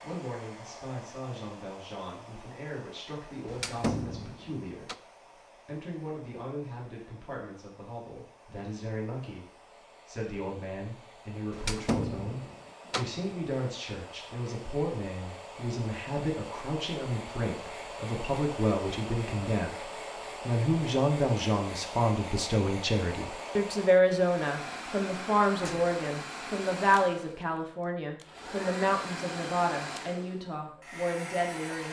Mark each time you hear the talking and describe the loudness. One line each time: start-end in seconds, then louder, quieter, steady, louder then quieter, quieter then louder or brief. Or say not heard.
0.0-31.8 louder.